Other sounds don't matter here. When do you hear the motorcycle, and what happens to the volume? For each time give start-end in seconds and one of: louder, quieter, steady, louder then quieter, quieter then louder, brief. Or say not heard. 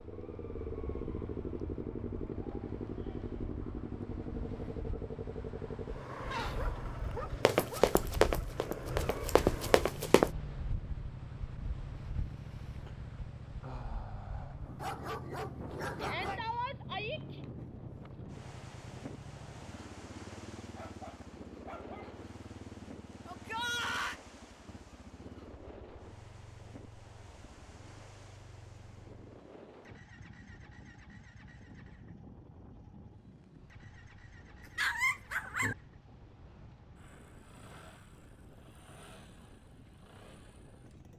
0.0-41.1 quieter.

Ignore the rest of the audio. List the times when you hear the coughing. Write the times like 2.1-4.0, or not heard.
not heard.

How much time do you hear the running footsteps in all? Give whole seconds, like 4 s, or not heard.
3 s.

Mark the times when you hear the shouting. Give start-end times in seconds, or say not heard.
16.0-17.4, 23.2-24.2.